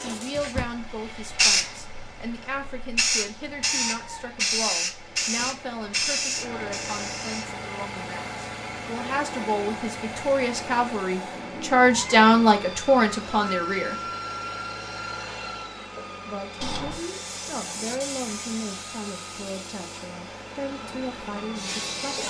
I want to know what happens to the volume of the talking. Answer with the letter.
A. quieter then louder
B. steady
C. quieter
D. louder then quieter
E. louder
D.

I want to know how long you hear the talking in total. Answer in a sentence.
You can hear the talking for 20 seconds altogether.